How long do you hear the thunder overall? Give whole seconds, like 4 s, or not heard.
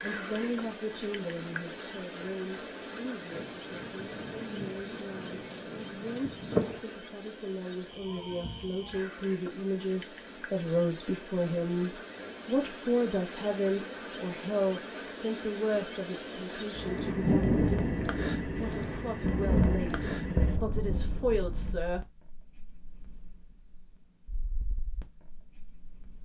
8 s.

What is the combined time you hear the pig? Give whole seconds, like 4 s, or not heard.
not heard.